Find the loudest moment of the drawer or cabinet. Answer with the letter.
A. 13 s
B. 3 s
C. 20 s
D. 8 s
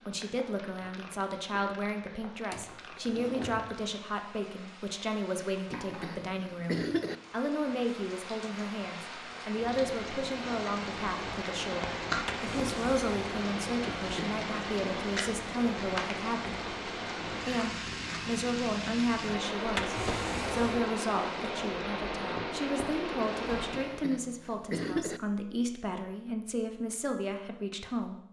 C.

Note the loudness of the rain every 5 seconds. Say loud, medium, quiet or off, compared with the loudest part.
quiet, medium, loud, loud, loud, off.